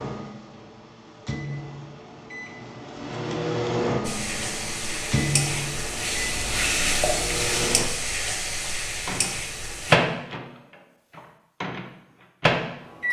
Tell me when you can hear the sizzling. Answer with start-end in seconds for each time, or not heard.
4.0-9.9.